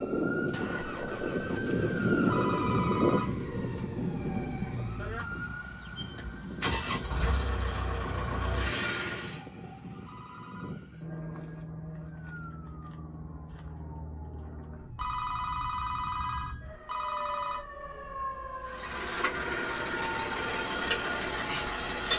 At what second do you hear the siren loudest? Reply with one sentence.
The loudest moment of the siren is at 3 seconds.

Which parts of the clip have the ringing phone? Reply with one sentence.
You can hear the ringing phone from 2.3 to 3.3 s, from 10.1 to 10.8 s and from 14.9 to 17.6 s.